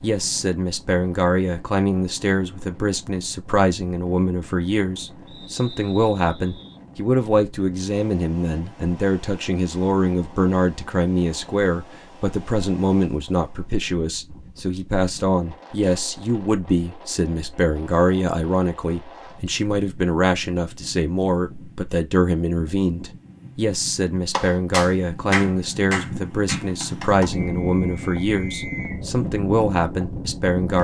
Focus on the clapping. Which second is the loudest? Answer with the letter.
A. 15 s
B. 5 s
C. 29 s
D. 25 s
D.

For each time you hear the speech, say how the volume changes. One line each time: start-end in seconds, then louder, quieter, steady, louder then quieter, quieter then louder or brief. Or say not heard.
0.0-30.7 steady.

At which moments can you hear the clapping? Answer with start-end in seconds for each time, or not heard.
24.3-27.4.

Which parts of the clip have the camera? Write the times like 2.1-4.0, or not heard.
not heard.